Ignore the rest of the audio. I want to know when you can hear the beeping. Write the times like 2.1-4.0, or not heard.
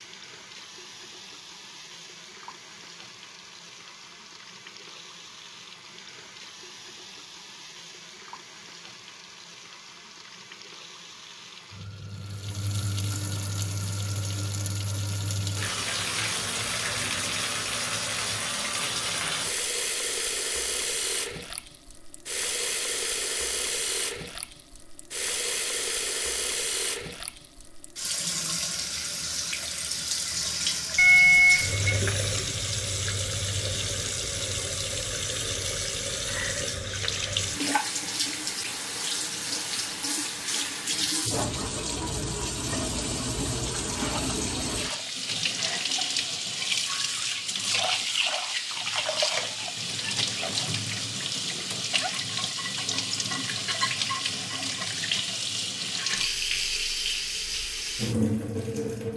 30.9-32.0.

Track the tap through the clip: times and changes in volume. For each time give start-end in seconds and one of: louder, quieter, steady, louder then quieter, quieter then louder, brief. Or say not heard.
0.0-59.1 louder.